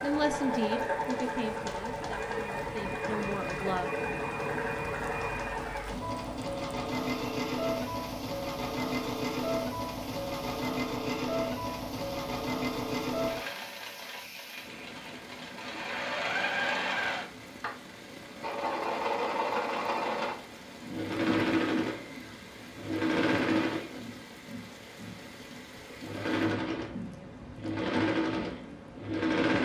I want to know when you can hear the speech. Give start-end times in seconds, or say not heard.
0.0-3.9.